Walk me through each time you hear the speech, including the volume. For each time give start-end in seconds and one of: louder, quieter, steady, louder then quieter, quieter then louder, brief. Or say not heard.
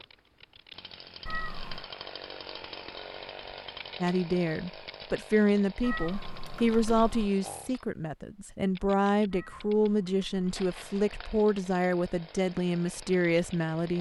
4.0-13.9 steady.